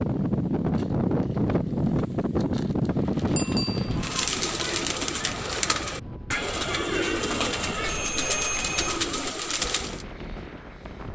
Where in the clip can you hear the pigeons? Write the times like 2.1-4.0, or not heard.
2.9-10.1.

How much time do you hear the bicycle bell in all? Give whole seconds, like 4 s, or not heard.
2 s.